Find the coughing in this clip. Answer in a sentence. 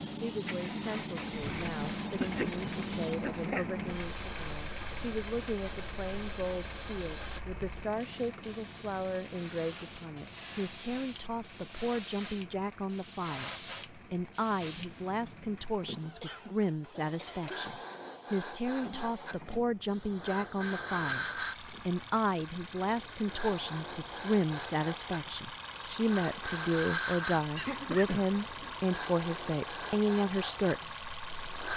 You can hear the coughing from 1.8 to 3.6 s, from 16.2 to 17.9 s and from 27.6 to 28.9 s.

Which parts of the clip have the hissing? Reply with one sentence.
You can hear the hissing from 0.0 to 31.7 s.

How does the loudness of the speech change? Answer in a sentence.
The loudness of the speech goes up.